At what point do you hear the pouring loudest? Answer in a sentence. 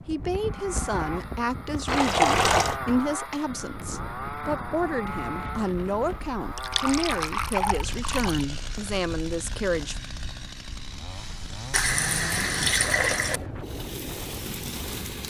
The volume of the pouring peaks at 2 seconds.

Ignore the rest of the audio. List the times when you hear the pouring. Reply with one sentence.
You can hear the pouring from 1.9 to 2.8 s, from 6.5 to 8.4 s and from 11.7 to 13.4 s.